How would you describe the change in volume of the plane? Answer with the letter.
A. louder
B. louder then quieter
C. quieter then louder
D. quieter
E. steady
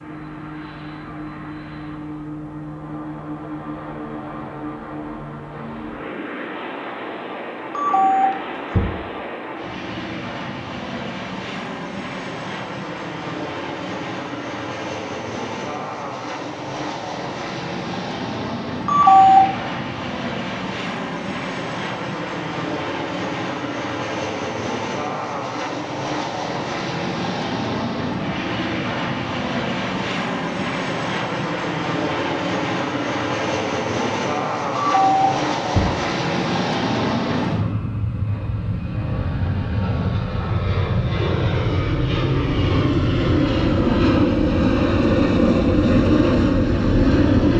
A.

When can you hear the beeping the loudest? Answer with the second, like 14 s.
19 s.